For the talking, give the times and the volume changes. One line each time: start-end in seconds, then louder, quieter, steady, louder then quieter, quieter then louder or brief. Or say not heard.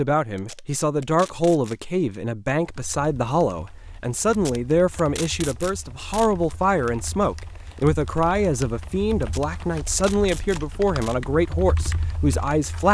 0.0-12.9 steady.